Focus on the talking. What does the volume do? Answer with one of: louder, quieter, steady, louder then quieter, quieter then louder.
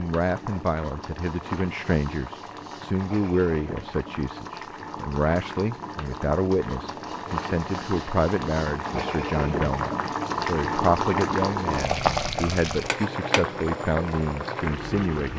steady.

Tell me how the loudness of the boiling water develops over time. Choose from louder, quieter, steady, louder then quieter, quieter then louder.
louder.